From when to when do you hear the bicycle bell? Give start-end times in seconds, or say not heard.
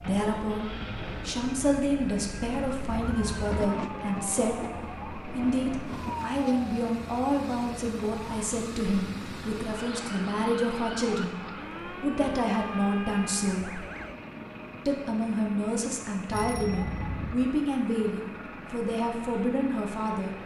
2.9-3.6, 16.3-17.4.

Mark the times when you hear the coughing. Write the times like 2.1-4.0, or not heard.
not heard.